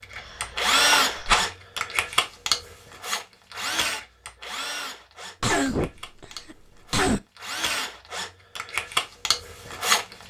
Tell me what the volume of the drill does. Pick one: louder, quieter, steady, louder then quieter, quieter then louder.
quieter then louder.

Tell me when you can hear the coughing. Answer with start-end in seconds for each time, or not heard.
0.1-1.4, 5.4-7.2.